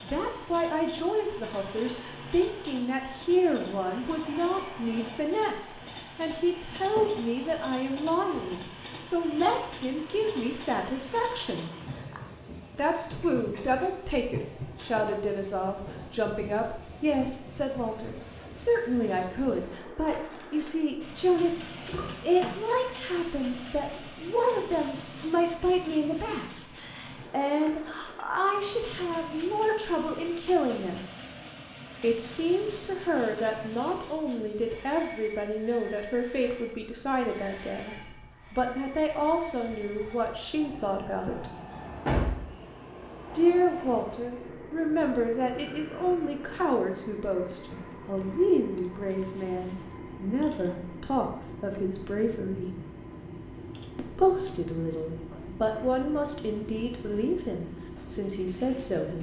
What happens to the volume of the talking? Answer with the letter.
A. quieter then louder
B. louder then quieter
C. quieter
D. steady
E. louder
D.